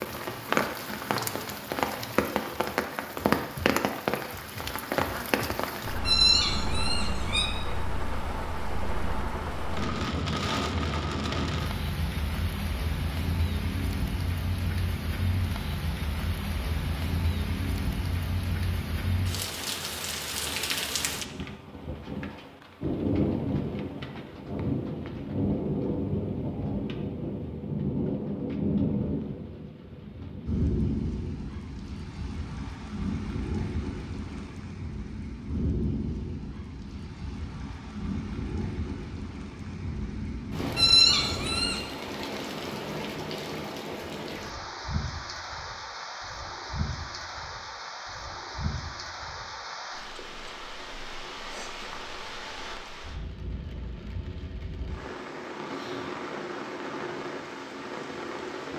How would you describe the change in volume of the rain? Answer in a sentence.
The volume of the rain goes down.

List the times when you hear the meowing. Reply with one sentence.
The meowing can be heard from 6.0 to 7.5 s and from 40.8 to 41.8 s.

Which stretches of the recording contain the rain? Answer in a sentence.
The rain can be heard from 0.0 to 58.7 s.